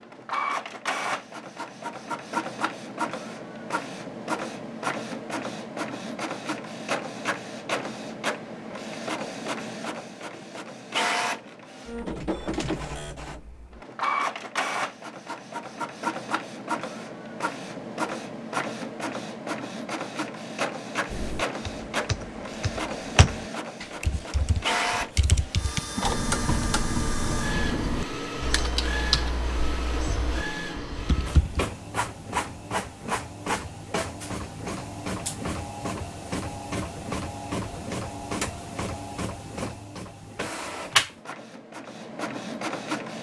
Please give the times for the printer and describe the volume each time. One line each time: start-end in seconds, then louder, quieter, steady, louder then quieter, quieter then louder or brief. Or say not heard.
0.0-43.1 steady.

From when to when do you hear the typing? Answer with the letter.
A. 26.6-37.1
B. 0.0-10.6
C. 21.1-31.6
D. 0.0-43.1
C.